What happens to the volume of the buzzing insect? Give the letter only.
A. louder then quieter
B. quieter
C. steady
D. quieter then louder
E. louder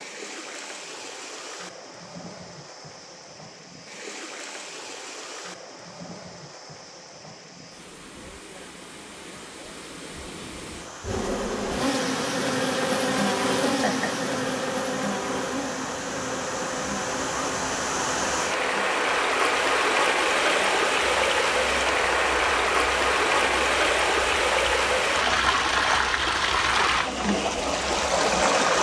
B.